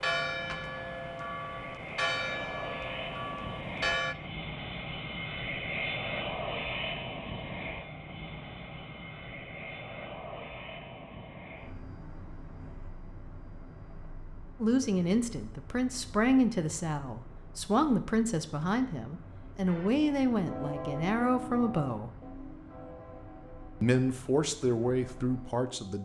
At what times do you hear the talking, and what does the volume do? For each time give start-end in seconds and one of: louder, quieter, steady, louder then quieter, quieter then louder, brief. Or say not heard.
14.6-22.1 steady
23.8-26.0 brief.